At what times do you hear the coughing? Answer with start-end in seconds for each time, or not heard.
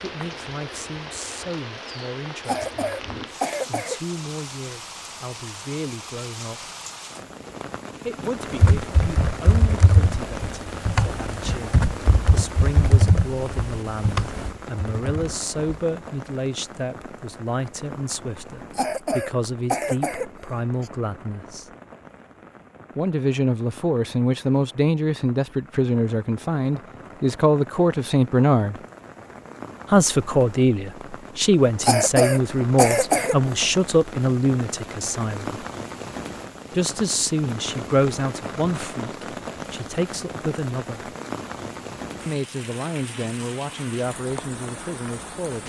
2.5-4.2, 18.7-20.9, 31.8-33.5.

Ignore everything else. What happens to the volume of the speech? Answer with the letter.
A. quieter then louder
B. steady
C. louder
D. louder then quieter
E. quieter
D.